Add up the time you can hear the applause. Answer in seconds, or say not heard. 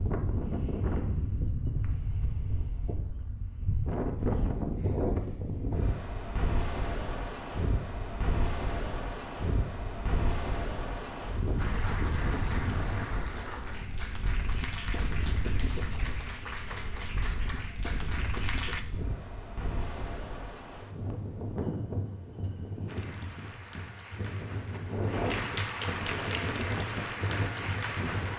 13 s.